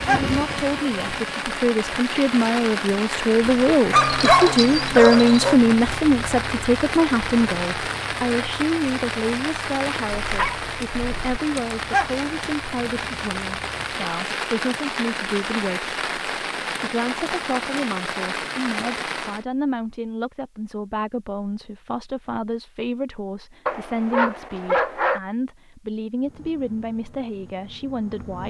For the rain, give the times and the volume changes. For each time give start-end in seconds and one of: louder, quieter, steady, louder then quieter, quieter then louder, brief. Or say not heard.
0.0-19.4 steady.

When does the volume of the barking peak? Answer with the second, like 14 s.
4 s.